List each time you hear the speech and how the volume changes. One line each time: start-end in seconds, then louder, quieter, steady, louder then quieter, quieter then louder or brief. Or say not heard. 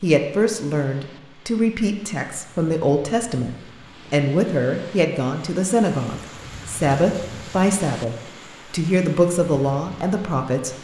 0.0-10.7 steady.